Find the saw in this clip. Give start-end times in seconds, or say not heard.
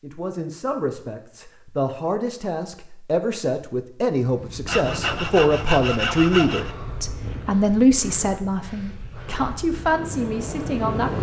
4.7-6.8.